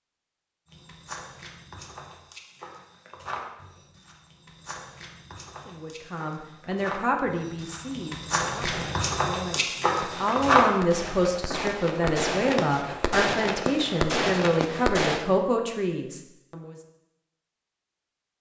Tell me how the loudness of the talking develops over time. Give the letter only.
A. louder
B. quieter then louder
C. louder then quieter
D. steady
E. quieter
B.